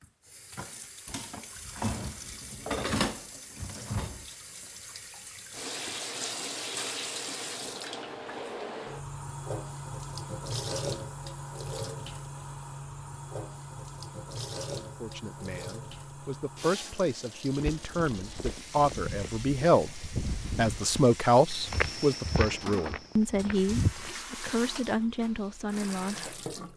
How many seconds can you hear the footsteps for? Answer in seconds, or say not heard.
7 s.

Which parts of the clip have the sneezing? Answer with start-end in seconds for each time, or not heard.
not heard.